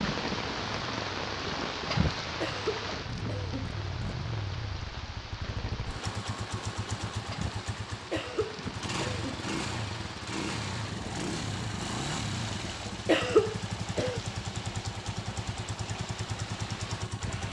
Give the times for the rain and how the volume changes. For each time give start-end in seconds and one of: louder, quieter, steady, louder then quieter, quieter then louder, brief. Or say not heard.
0.0-17.4 quieter.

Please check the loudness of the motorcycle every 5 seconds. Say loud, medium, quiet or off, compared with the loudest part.
medium, loud, loud, loud.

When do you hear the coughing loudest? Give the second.
13 s.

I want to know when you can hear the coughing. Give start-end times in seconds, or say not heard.
2.4-3.8, 8.1-9.2, 12.8-14.2.